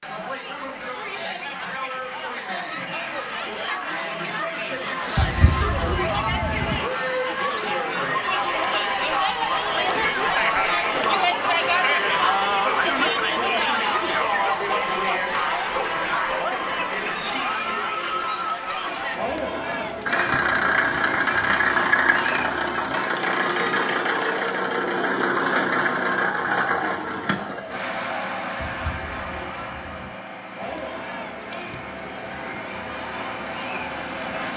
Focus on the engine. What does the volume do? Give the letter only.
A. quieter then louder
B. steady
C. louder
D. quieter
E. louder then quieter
D.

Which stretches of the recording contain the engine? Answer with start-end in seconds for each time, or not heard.
20.1-34.5.